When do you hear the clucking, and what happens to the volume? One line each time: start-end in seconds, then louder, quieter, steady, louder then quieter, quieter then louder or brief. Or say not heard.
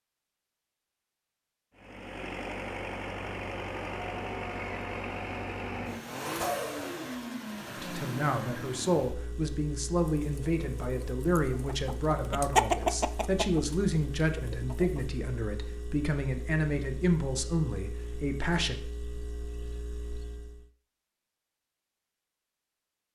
10.1-15.1 louder then quieter.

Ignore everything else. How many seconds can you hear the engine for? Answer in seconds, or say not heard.
19 s.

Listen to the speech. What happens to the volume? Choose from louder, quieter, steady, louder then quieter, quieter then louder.
steady.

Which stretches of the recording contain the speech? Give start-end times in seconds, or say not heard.
7.8-18.8.